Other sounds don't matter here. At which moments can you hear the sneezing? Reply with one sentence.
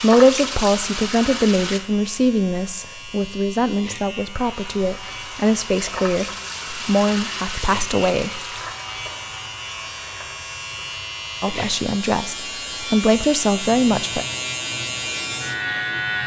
The sneezing can't be heard in this clip.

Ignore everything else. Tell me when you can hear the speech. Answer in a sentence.
You can hear the speech from 0.0 to 8.4 s and from 11.4 to 14.2 s.